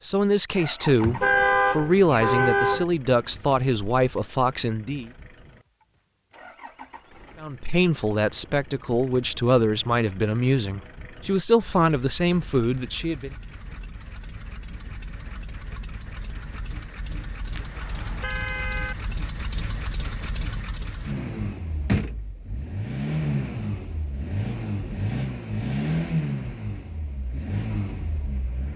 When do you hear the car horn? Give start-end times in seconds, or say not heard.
1.0-2.9, 17.6-18.9.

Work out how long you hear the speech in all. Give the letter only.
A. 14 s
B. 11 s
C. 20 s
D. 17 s
B.